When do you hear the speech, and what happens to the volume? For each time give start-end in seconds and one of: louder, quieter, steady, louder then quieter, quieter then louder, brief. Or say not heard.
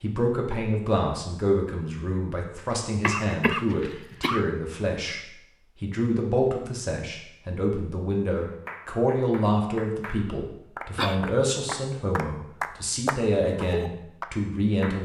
0.0-15.0 steady.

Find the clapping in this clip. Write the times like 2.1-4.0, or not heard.
8.4-15.0.